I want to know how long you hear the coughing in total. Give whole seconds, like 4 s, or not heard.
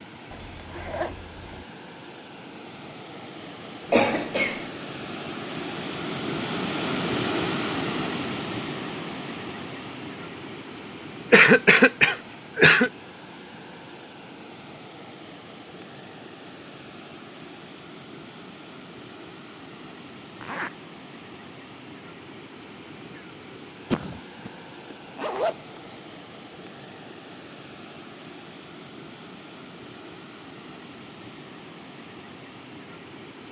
3 s.